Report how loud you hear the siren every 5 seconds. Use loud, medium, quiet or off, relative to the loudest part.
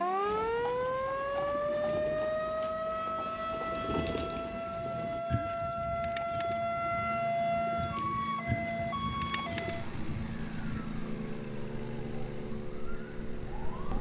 loud, loud, quiet.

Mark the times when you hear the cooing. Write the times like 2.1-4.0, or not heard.
0.2-10.8.